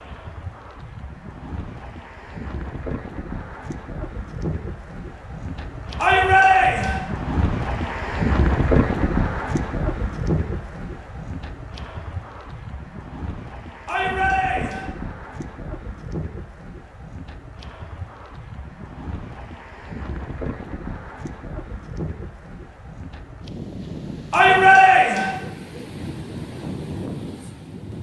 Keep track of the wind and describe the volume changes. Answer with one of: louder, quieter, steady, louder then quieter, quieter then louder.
louder then quieter.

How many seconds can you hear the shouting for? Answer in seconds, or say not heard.
3 s.